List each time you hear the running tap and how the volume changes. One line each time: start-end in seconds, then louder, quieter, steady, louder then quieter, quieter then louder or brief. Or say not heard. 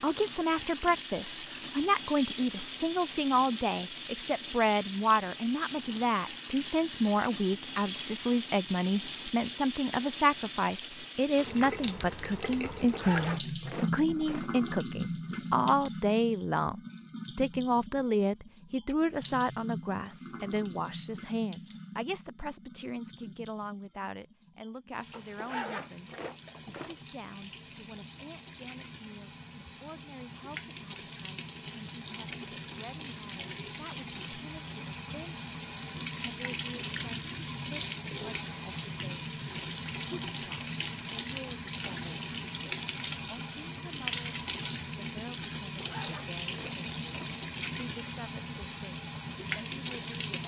0.0-50.4 quieter then louder.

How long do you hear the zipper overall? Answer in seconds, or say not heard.
5 s.